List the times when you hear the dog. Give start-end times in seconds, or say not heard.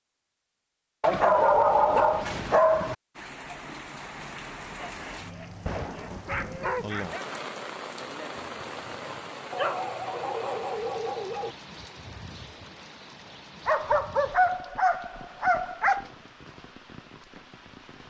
1.0-3.0, 4.8-7.2, 9.5-11.6, 13.7-16.1.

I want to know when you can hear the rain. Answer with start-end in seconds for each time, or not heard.
3.1-18.0.